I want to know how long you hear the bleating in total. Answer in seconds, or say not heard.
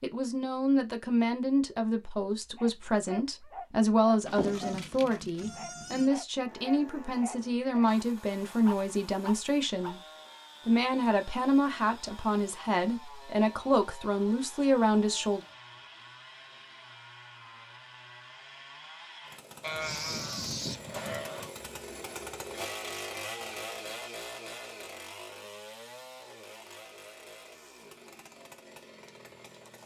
4 s.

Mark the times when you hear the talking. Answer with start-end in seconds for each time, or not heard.
0.0-10.0, 10.7-15.4.